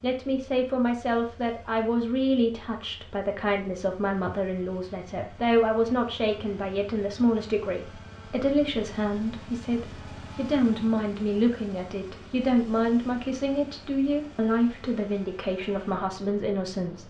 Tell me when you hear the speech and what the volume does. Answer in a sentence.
You can hear the speech from 0.0 to 17.0 s, at a steady volume.